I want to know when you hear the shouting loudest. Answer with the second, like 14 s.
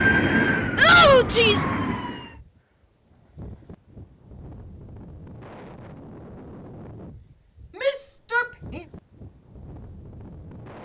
1 s.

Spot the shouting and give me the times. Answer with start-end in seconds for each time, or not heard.
0.8-1.7, 7.8-8.8.